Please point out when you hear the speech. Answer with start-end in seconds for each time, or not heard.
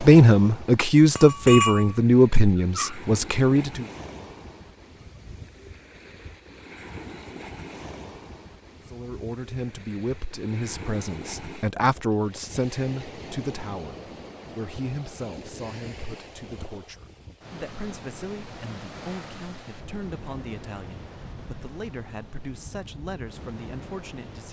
0.0-3.9, 8.8-24.4.